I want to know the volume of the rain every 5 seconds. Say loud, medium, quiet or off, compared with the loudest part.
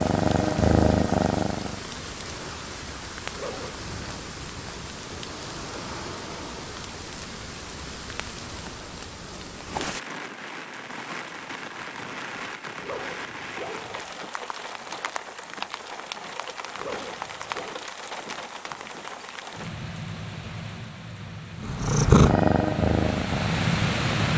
medium, medium, medium, medium, loud.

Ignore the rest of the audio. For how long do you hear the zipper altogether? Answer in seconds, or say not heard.
3 s.